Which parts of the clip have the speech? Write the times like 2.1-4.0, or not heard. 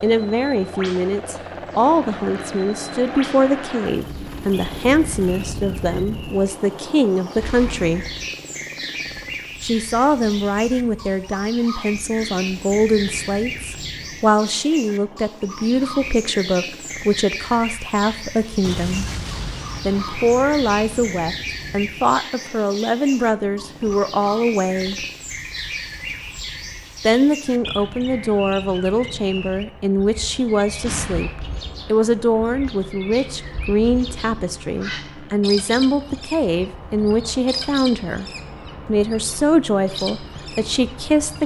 0.0-8.1, 9.6-19.1, 19.9-24.9, 27.1-38.2, 38.9-41.4.